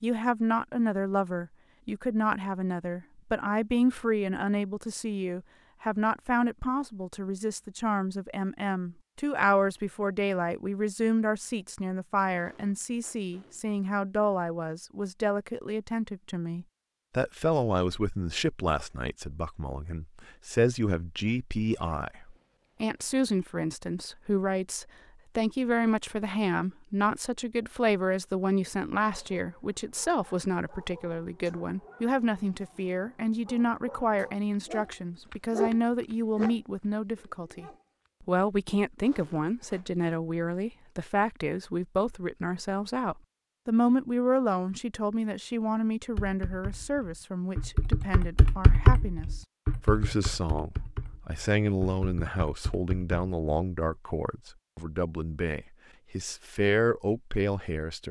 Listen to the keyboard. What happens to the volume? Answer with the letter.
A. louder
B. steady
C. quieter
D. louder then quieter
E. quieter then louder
D.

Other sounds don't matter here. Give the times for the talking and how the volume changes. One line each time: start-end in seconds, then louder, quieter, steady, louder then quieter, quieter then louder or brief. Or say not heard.
0.0-58.0 steady.